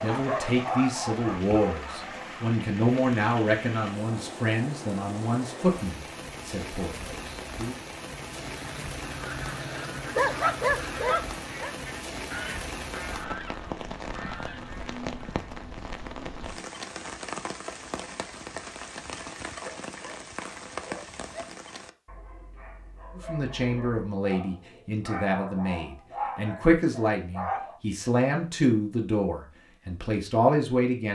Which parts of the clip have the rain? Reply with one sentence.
You can hear the rain from 0.0 to 21.9 s.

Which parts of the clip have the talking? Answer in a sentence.
The talking can be heard from 0.0 to 7.8 s and from 23.1 to 31.0 s.